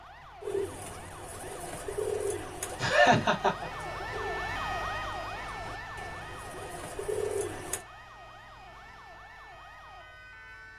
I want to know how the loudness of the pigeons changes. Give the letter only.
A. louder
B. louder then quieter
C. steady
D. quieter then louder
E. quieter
D.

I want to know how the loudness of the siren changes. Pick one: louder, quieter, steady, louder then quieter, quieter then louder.
louder then quieter.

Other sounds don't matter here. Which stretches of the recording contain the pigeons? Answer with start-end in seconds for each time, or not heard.
0.4-7.8.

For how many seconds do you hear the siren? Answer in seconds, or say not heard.
11 s.